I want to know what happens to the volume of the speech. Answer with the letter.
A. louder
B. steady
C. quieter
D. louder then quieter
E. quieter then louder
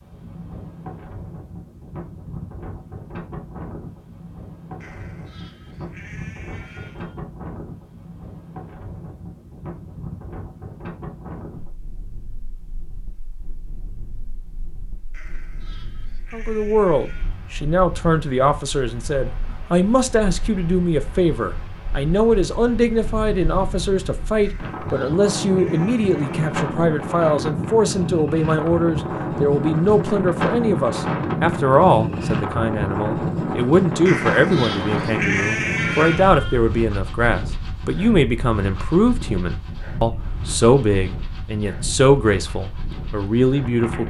B.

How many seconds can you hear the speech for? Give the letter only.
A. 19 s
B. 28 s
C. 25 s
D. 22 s
B.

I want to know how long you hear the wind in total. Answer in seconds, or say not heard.
44 s.